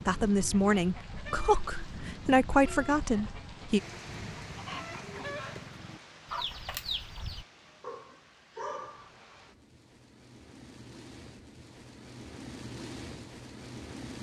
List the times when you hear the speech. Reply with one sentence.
You can hear the speech from 0.1 to 3.8 s.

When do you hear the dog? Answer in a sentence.
You can hear the dog from 7.8 to 9.1 s.